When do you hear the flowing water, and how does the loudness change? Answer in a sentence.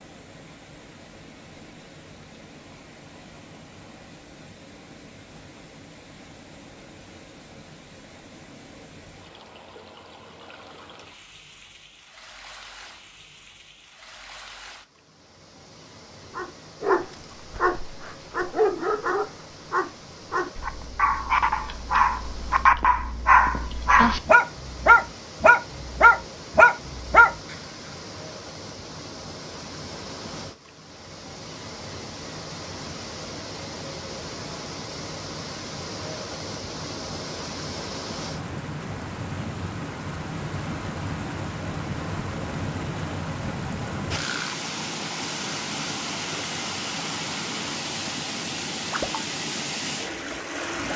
The flowing water can be heard from 0.0 to 50.9 s, getting louder.